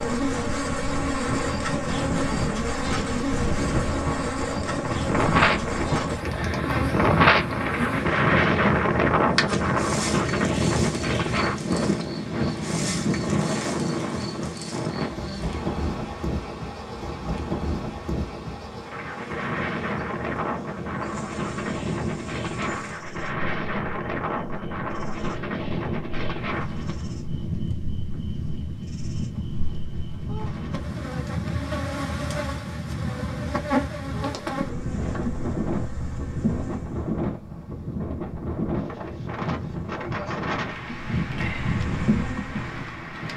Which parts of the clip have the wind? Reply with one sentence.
The wind can be heard from 0.0 to 43.3 s.